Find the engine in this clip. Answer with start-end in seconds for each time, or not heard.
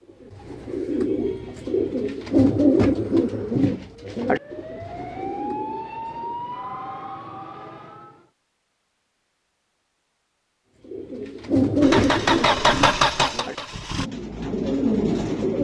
11.8-14.1.